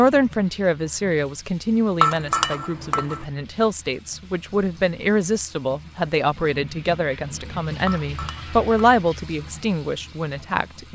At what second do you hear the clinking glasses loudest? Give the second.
2 s.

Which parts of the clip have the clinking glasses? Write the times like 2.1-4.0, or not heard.
2.0-3.2, 7.8-8.7.